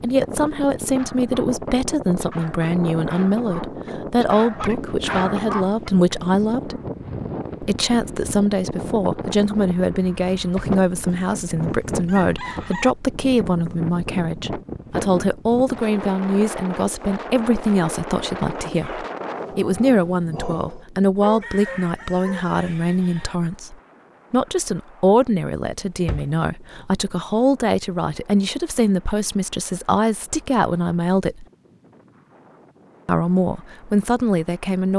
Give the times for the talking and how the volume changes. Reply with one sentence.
The talking can be heard from 0.0 to 6.8 s, at a steady volume; from 7.6 to 31.4 s, at a steady volume; and briefly from 33.0 to 34.9 s.